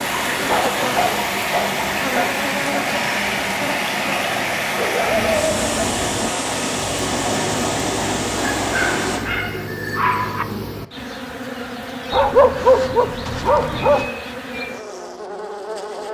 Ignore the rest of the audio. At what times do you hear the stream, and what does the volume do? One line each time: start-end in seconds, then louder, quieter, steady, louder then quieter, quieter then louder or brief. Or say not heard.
0.0-9.2 steady.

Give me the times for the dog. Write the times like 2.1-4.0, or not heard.
0.5-2.3, 4.8-5.8, 8.4-10.4, 12.1-14.1.